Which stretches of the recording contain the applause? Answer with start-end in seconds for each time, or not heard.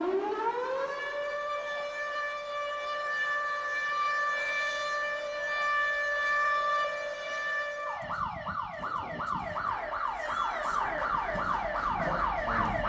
9.4-12.8.